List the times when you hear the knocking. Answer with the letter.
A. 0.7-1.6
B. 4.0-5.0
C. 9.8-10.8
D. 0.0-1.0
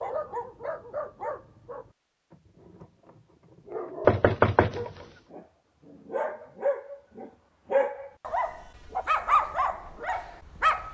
B.